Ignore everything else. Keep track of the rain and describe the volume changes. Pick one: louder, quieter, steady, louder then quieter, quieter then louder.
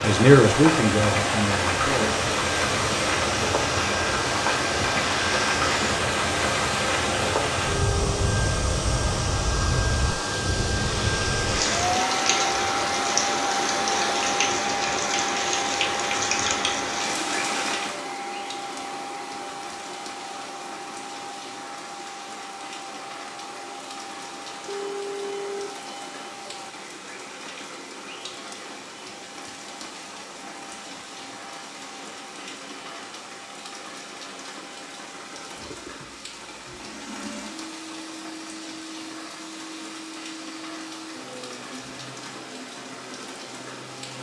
quieter.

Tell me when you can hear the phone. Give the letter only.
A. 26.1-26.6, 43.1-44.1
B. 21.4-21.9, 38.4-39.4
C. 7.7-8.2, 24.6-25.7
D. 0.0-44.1
C.